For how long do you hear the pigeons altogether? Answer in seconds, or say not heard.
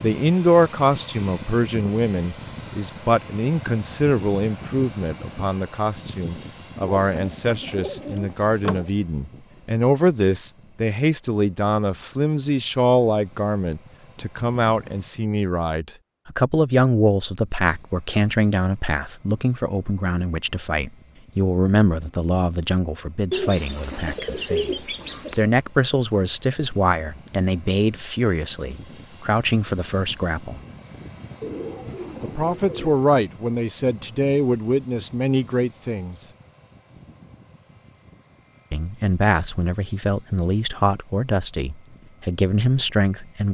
6 s.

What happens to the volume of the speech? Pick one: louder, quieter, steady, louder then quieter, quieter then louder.
steady.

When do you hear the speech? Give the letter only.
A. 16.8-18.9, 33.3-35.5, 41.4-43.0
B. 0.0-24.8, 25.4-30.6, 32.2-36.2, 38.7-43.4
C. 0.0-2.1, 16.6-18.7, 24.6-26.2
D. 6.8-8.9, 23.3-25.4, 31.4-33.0
B.